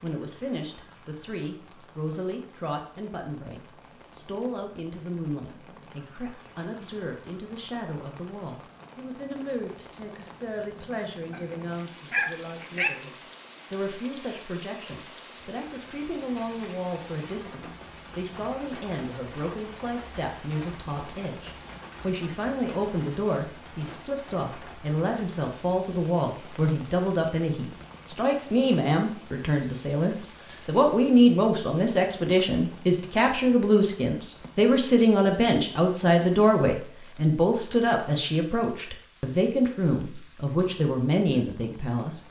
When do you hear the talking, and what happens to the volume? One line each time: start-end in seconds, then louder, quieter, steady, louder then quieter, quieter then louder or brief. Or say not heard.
0.0-42.2 louder.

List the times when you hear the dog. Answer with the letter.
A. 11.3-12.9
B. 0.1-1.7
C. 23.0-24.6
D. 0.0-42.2
A.